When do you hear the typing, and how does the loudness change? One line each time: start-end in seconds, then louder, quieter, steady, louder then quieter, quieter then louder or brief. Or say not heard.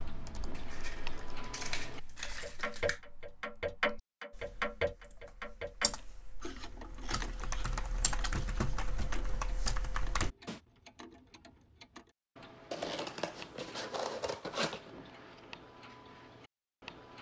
0.0-10.6 quieter then louder.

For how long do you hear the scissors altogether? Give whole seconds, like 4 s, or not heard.
7 s.